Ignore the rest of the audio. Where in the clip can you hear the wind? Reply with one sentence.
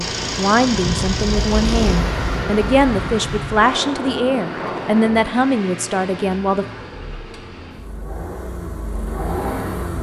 You can hear the wind from 0.1 to 5.3 s.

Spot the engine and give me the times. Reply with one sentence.
You can hear the engine from 0.0 to 9.9 s.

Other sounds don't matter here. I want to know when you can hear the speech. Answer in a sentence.
You can hear the speech from 0.0 to 6.7 s.